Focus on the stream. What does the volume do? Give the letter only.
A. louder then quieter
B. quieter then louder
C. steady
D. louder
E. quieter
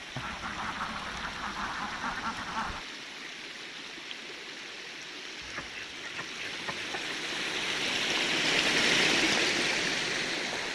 D.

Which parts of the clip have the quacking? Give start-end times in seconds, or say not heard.
0.1-2.9, 5.4-6.9.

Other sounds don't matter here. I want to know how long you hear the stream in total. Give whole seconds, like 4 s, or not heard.
11 s.